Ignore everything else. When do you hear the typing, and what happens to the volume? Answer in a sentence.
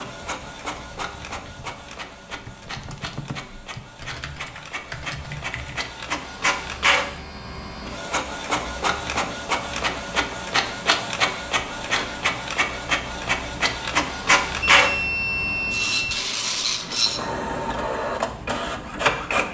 You can hear the typing from 0.1 to 6.0 s, getting louder.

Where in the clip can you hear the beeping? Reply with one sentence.
You can hear the beeping from 14.7 to 16.1 s.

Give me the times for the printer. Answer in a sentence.
The printer can be heard from 0.0 to 19.4 s.